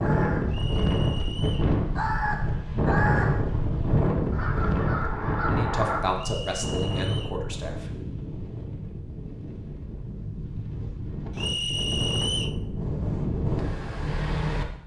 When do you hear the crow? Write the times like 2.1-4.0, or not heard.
0.0-6.0.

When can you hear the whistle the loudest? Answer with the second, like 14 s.
12 s.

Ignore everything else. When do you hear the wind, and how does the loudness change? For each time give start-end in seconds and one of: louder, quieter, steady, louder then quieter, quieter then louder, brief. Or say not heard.
0.0-14.8 quieter then louder.